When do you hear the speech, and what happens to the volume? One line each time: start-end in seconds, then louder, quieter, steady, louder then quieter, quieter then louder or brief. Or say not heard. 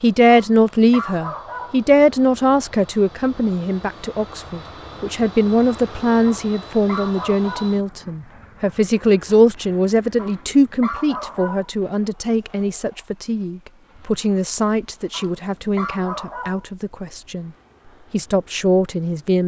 0.0-17.5 quieter
18.1-19.4 brief.